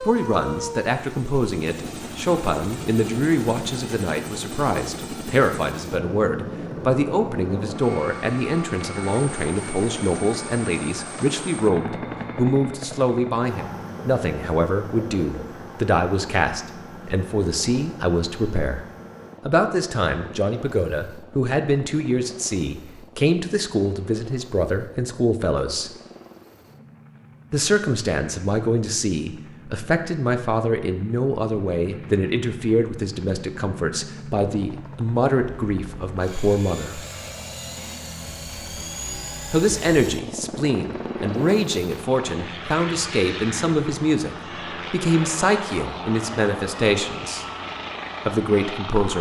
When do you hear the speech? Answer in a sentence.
The speech can be heard from 0.0 to 18.8 s, from 19.4 to 25.9 s, from 27.5 to 37.0 s, from 39.5 to 47.5 s and from 48.2 to 49.1 s.